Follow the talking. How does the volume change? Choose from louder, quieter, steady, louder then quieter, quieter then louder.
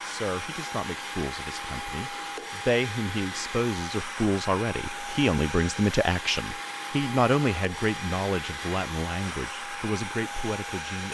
louder then quieter.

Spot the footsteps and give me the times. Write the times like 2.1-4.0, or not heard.
not heard.